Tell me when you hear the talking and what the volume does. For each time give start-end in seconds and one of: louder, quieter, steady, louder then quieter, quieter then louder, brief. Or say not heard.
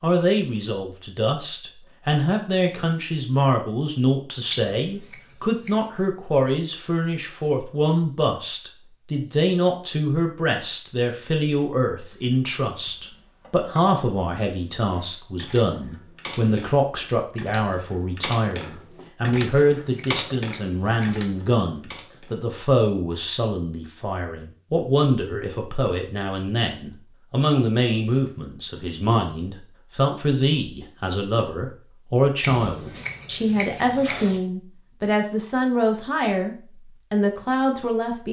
0.0-38.2 steady.